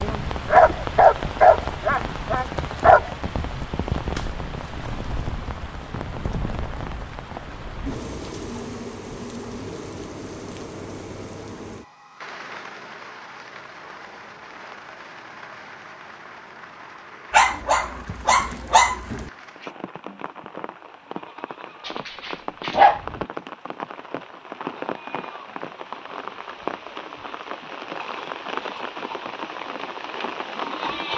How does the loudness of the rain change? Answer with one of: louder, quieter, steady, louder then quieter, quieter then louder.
quieter then louder.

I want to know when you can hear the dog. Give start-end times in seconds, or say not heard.
0.5-3.1, 17.3-19.3, 21.9-23.1.